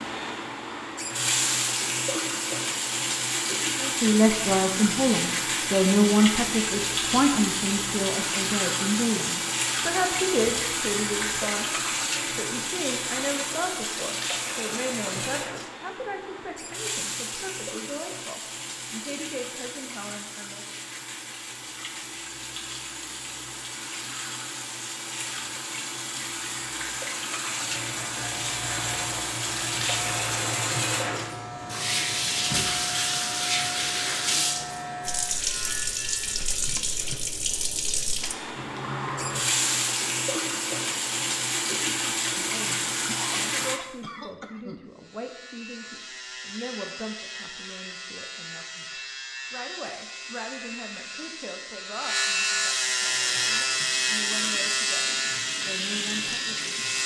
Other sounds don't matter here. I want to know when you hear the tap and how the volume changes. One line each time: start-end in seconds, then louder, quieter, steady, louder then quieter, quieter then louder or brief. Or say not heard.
0.0-43.8 quieter then louder
53.0-57.0 louder.